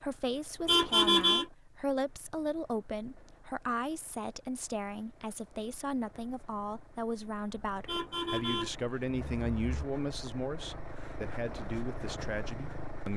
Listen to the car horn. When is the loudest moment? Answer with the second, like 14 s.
1 s.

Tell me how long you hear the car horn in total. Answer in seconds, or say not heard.
3 s.